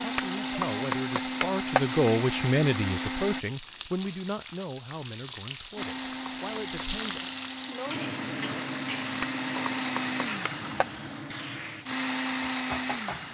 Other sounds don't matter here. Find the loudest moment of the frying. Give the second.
7 s.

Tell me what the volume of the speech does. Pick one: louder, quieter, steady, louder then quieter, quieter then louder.
louder then quieter.